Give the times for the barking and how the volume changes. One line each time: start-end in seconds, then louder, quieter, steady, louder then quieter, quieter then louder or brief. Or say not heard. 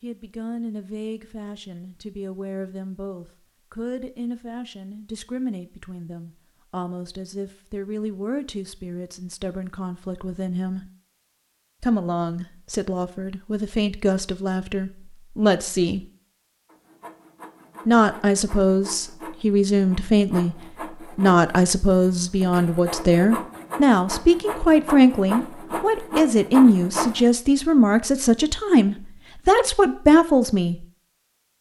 not heard.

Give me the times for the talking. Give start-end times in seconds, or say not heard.
0.0-10.8, 11.8-16.1, 17.9-20.6, 21.1-30.9.